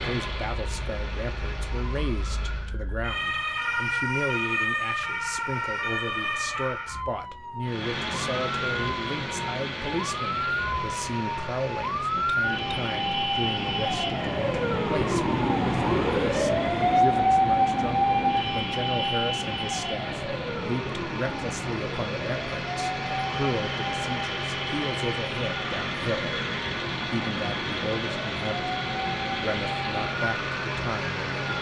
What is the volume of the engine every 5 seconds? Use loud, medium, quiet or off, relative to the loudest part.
medium, loud, medium, medium, loud, loud, loud.